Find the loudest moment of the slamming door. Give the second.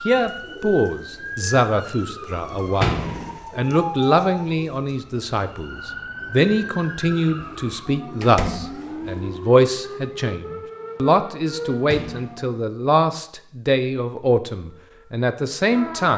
3 s.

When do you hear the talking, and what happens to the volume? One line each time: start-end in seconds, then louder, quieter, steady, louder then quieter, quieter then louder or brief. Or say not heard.
0.1-16.1 steady.